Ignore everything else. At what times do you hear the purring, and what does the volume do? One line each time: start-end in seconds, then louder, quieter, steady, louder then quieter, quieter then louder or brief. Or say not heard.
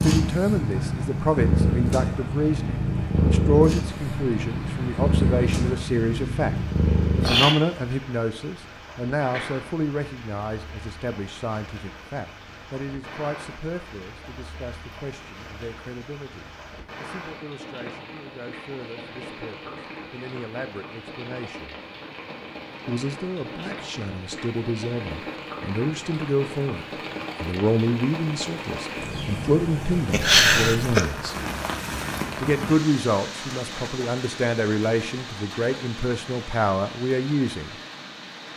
0.0-7.5 steady.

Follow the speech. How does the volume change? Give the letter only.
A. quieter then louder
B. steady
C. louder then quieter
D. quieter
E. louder
A.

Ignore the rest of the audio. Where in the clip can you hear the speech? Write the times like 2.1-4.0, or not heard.
0.0-6.5, 7.2-21.8, 22.9-31.4, 32.4-37.8.